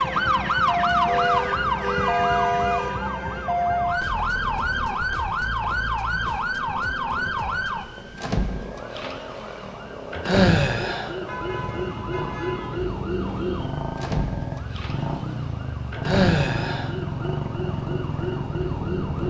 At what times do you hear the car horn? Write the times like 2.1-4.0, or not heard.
1.1-2.9, 11.2-12.8.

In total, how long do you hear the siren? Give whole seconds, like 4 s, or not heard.
19 s.